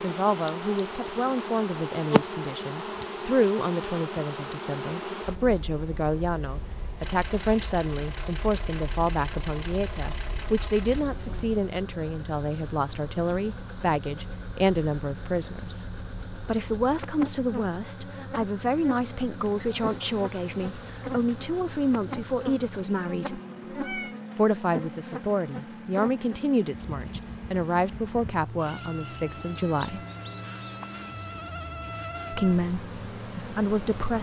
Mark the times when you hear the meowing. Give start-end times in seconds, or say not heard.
23.2-24.1.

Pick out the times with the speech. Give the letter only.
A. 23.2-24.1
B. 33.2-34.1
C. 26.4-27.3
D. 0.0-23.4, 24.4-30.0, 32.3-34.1
D.